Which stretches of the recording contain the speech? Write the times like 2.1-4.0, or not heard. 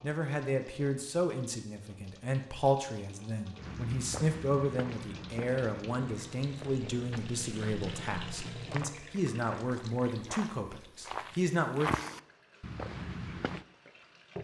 0.0-11.9.